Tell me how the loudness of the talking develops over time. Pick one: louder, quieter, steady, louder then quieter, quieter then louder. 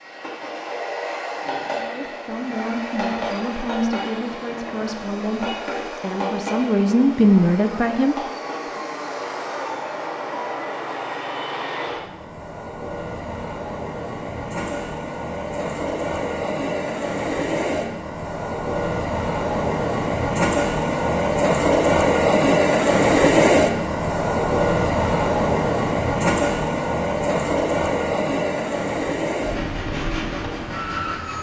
louder.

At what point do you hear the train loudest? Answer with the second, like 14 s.
23 s.